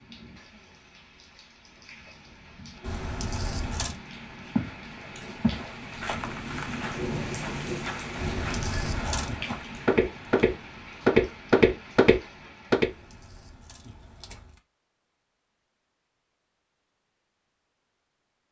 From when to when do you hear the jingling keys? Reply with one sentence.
The jingling keys can be heard from 2.8 to 4.0 s, from 8.2 to 9.4 s and from 12.8 to 14.6 s.